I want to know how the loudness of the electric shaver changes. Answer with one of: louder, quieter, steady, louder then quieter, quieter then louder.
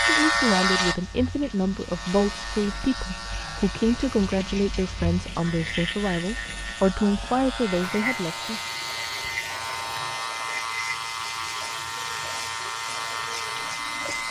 quieter then louder.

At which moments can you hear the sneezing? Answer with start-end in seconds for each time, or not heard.
not heard.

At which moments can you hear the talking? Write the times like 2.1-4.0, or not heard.
0.1-8.6.